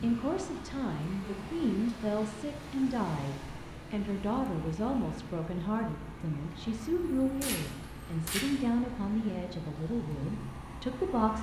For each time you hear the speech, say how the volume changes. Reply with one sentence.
You can hear the speech from 0.0 to 11.3 s, at a steady volume.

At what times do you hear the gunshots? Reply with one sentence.
The gunshots can be heard from 7.2 to 8.5 s.